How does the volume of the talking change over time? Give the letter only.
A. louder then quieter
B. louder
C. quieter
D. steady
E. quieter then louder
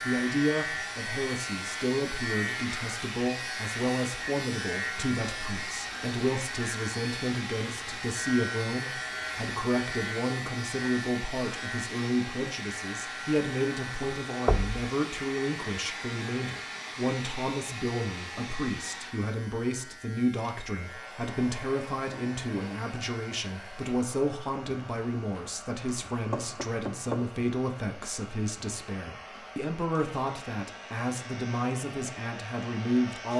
D.